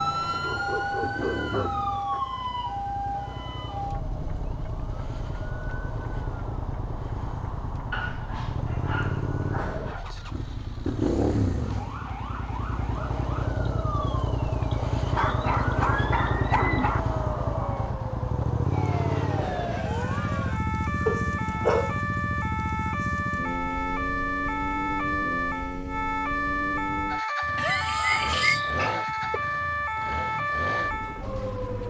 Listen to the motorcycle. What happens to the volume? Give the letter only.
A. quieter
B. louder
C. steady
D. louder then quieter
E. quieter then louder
D.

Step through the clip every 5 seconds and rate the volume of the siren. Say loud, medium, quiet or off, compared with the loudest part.
loud, quiet, medium, medium, loud, loud, loud.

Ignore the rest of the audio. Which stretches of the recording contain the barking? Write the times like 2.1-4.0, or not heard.
0.3-2.2, 7.9-10.1, 15.1-17.0, 21.1-22.0, 27.6-29.4.